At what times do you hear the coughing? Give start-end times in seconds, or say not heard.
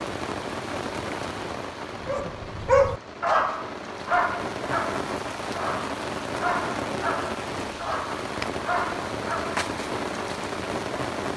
not heard.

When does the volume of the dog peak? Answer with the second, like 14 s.
3 s.